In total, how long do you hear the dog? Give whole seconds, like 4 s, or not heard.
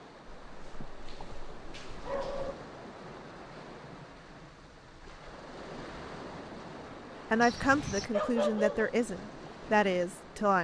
4 s.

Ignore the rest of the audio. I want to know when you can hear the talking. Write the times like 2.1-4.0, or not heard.
7.3-10.5.